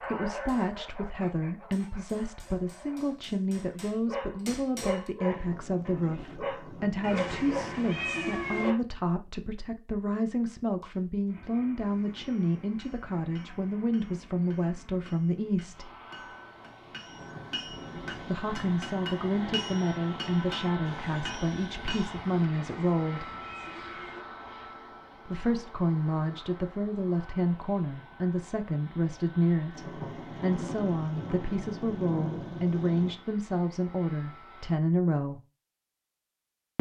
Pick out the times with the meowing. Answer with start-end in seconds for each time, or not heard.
7.0-8.8, 22.6-24.2.